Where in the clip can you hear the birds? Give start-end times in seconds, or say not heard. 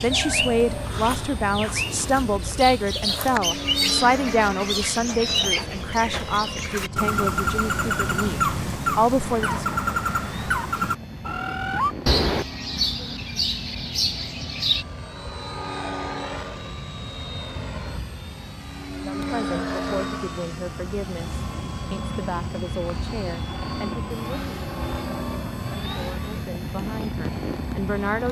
0.0-14.8.